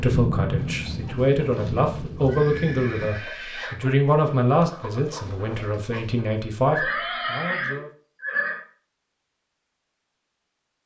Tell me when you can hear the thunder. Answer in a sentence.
You can hear the thunder from 0.0 to 3.1 s.